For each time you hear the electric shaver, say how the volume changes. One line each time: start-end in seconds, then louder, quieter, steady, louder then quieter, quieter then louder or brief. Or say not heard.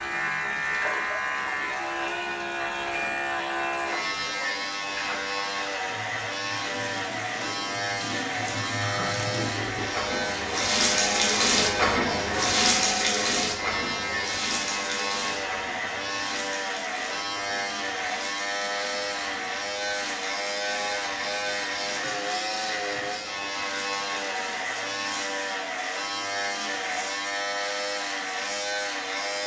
0.0-29.4 steady.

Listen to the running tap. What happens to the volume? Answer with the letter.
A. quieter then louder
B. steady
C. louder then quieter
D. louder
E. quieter
C.